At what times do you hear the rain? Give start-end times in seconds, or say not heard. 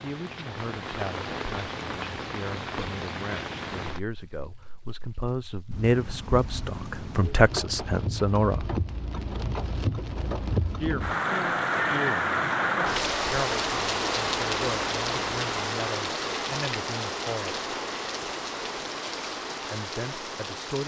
0.0-20.8.